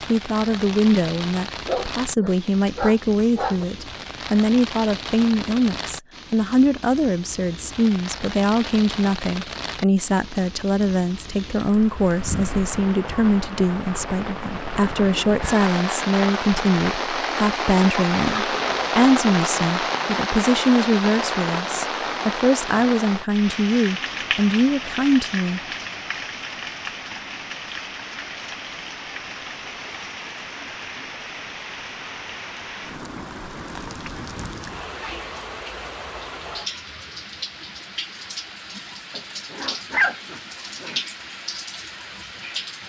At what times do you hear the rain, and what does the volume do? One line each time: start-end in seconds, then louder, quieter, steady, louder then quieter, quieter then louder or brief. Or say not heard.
0.0-42.8 louder then quieter.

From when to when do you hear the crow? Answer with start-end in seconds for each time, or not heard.
not heard.